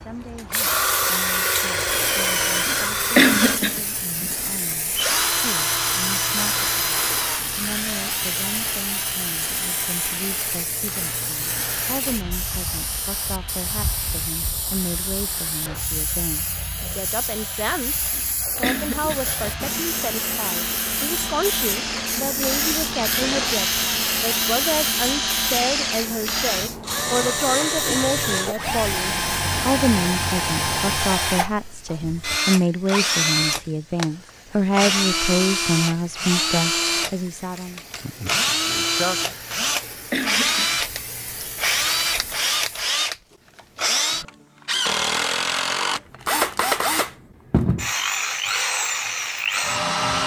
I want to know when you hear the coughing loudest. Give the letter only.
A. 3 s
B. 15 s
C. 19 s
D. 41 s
A.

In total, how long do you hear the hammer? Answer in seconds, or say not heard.
not heard.